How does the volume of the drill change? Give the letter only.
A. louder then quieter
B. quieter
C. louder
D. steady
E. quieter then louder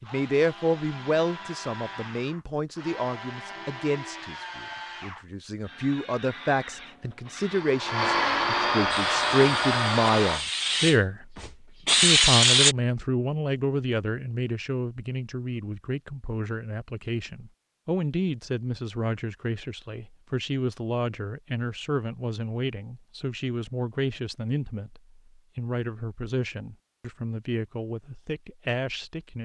C.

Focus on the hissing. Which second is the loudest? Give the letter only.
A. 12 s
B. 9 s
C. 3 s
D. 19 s
A.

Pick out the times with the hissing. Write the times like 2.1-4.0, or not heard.
8.9-12.8.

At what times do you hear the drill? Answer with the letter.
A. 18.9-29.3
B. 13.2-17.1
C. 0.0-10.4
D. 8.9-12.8
C.